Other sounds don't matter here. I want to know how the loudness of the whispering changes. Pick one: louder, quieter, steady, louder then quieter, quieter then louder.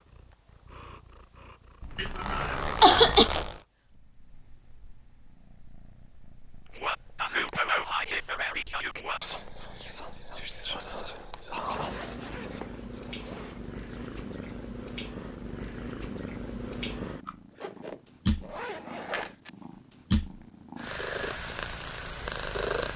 quieter.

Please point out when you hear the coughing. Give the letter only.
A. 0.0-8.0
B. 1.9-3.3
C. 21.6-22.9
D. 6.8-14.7
B.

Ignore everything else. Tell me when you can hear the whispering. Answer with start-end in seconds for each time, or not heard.
6.8-14.7.